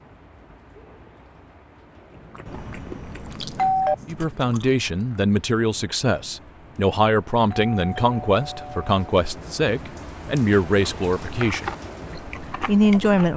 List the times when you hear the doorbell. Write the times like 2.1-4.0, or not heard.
2.5-4.0, 7.3-8.9.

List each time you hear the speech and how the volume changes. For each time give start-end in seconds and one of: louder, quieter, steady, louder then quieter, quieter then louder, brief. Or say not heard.
4.0-11.7 steady
12.7-13.3 brief.